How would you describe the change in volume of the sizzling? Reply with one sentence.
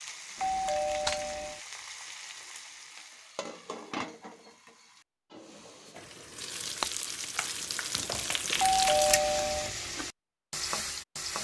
The volume of the sizzling goes up.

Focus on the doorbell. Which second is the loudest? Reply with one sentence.
The loudest moment of the doorbell is at 9 seconds.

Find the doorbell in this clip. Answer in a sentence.
You can hear the doorbell from 0.3 to 1.6 s and from 8.6 to 9.7 s.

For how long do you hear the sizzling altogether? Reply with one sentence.
You can hear the sizzling for 11 seconds altogether.